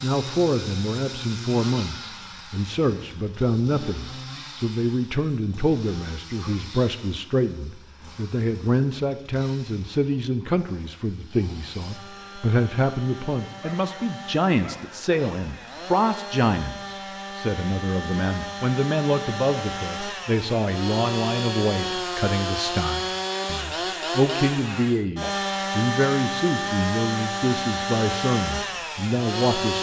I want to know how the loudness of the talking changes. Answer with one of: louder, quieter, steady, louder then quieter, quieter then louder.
steady.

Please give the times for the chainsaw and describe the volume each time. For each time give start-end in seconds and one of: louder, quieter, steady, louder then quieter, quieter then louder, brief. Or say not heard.
0.0-29.7 quieter then louder.